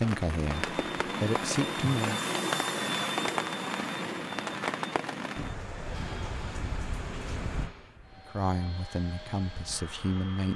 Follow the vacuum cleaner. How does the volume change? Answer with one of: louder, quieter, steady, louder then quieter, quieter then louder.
quieter.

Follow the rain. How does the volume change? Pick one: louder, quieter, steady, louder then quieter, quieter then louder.
quieter.